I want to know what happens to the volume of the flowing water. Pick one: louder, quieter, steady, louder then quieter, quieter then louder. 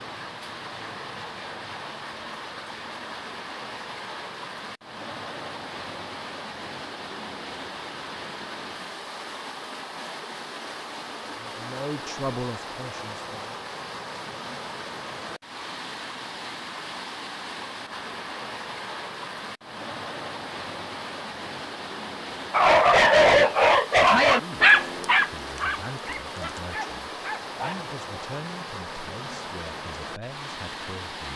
steady.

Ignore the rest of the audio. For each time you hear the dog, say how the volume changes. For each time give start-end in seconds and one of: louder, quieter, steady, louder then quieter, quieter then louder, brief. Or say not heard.
22.5-27.9 quieter.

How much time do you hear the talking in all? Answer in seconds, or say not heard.
9 s.